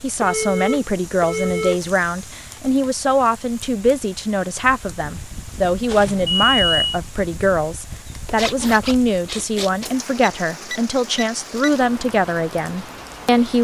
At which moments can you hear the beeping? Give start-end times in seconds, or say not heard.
0.2-1.8, 5.8-7.0, 10.2-11.7.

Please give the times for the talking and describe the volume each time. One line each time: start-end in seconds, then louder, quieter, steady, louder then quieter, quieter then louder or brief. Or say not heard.
0.0-13.6 steady.